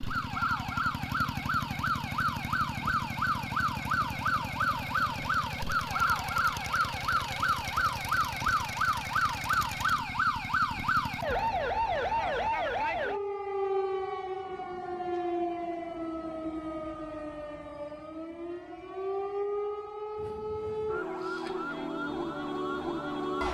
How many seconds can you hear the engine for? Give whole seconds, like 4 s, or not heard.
12 s.